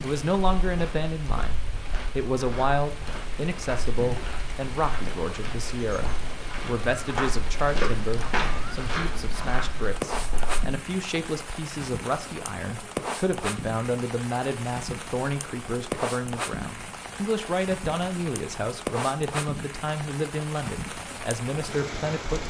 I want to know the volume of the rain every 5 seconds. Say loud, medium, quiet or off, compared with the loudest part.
medium, medium, loud, loud, loud.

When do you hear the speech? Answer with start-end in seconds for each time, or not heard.
0.0-22.4.